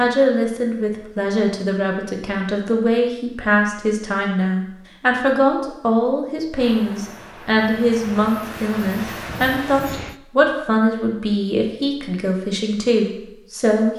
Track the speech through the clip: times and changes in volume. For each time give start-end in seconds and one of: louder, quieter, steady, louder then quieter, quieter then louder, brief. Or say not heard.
0.0-13.9 steady.